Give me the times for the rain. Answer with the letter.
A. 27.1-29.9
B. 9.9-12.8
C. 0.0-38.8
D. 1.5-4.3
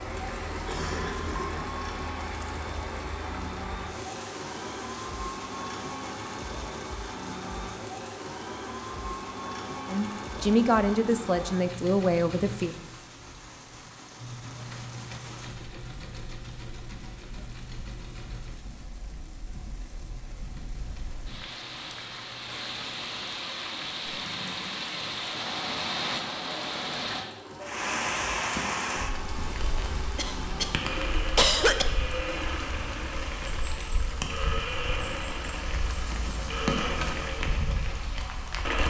C.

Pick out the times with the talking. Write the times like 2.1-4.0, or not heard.
9.9-12.8.